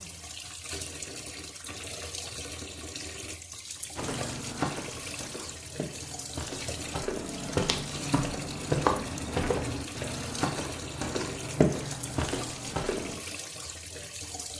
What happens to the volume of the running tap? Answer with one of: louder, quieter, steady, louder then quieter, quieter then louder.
steady.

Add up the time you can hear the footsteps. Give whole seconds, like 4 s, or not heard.
9 s.